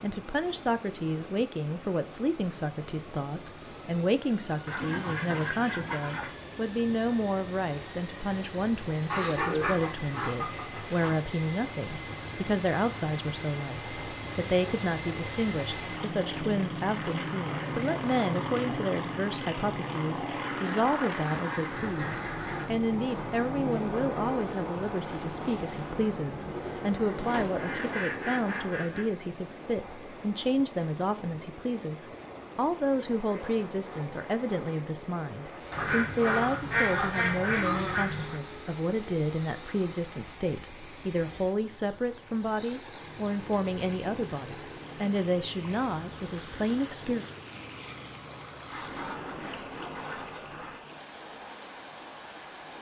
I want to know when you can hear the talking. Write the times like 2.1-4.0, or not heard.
0.0-47.2.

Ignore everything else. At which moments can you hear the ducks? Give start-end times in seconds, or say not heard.
4.7-6.3, 9.1-11.1, 20.4-22.6, 27.3-29.1, 35.7-38.4, 48.7-50.9.